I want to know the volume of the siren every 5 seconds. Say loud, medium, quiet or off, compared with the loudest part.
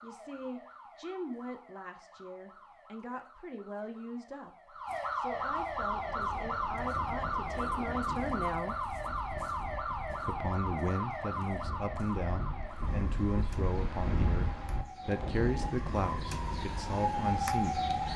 quiet, loud, medium, loud.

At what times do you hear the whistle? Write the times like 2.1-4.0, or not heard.
not heard.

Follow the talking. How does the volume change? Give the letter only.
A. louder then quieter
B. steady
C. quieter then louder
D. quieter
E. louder
E.